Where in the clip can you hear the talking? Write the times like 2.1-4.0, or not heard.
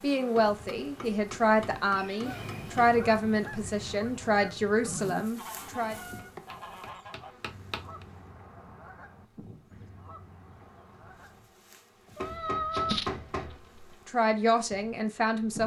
0.0-6.0, 14.1-15.6.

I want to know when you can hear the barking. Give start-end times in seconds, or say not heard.
not heard.